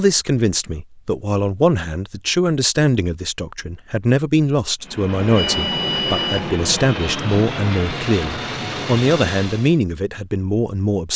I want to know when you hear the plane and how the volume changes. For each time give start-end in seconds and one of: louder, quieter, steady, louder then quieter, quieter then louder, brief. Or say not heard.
4.8-9.8 steady.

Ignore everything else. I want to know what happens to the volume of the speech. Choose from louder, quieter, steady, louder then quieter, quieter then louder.
steady.